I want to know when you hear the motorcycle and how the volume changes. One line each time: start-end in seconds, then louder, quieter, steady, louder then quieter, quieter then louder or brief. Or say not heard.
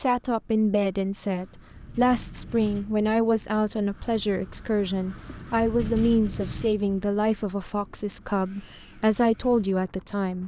not heard.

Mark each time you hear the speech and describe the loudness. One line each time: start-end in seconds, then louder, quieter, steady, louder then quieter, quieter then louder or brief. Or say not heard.
0.0-10.4 steady.